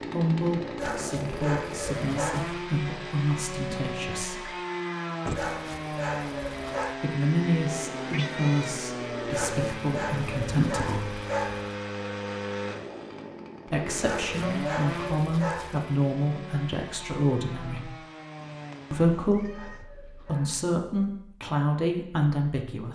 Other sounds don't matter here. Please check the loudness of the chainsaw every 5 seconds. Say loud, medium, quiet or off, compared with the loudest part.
loud, loud, loud, medium, off.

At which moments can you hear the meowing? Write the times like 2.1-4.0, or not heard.
4.0-5.5, 7.7-9.7, 18.4-19.9.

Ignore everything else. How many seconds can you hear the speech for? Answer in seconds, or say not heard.
17 s.